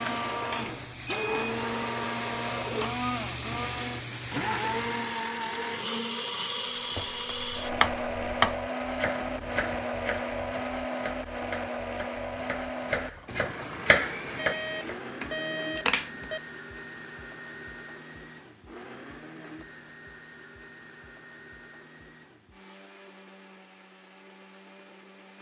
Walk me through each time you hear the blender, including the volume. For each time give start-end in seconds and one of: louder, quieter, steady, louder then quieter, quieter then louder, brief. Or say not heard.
0.0-25.3 quieter.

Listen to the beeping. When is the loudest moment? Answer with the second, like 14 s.
16 s.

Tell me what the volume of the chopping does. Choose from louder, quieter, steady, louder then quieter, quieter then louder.
quieter then louder.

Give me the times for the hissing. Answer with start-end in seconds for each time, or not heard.
0.0-5.2.